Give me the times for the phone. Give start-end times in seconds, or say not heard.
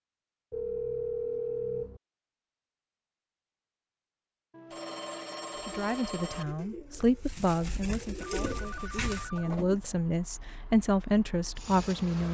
0.5-2.0, 4.5-6.5, 8.2-9.6.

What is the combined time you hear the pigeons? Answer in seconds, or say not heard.
4 s.